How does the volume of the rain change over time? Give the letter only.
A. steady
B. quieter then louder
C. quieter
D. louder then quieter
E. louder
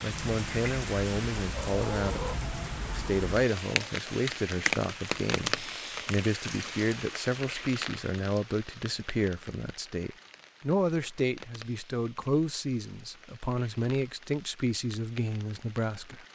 C.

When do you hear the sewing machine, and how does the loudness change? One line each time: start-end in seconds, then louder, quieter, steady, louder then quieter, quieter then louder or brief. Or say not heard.
not heard.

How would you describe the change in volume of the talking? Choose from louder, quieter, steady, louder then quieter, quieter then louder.
steady.